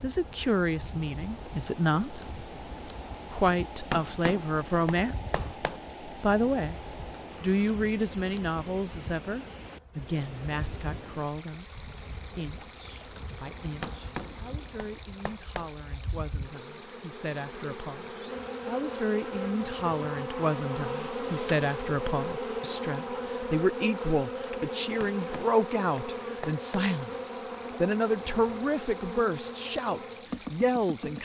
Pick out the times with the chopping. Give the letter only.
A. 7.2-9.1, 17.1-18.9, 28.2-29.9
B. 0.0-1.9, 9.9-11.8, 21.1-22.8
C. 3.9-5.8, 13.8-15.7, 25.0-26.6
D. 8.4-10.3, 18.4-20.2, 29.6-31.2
C.